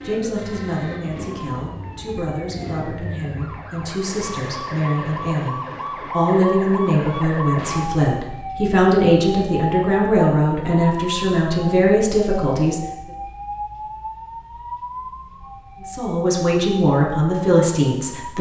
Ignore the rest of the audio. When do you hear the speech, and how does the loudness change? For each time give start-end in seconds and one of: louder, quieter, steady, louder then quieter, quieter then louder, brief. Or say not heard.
0.0-12.8 louder
15.8-18.3 brief.